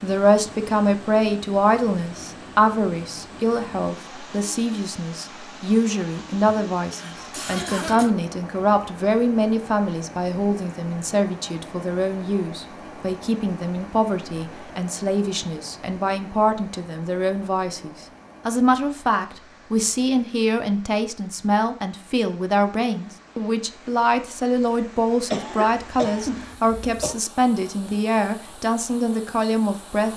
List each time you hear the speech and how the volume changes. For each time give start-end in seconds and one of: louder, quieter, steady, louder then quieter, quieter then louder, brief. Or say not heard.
0.0-30.1 steady.